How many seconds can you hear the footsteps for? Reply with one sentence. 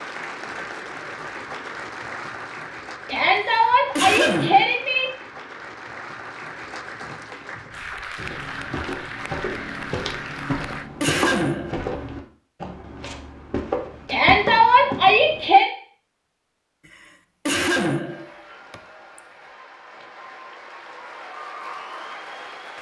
The footsteps can be heard for 7 seconds in total.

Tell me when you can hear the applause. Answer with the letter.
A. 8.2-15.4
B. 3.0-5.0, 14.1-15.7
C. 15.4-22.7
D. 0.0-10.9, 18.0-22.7
D.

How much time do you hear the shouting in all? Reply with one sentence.
You can hear the shouting for 4 seconds altogether.